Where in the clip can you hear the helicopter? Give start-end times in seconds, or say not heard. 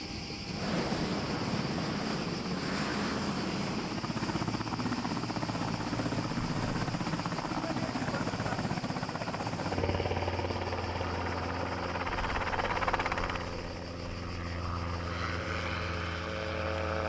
0.0-17.0.